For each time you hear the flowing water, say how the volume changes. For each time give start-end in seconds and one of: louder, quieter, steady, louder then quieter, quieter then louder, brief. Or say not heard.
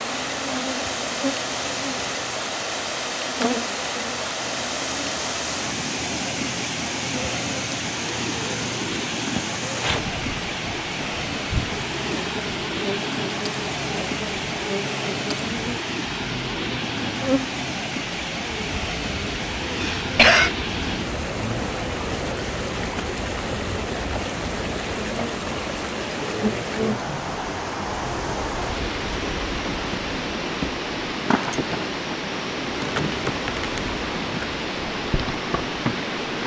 0.0-36.4 steady.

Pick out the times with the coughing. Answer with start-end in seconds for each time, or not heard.
19.8-20.6.